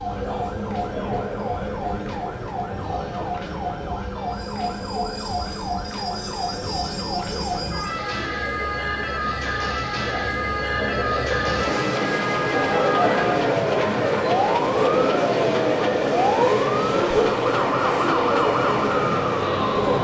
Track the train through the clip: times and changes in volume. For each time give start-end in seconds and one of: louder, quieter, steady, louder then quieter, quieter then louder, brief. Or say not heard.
0.0-19.9 louder.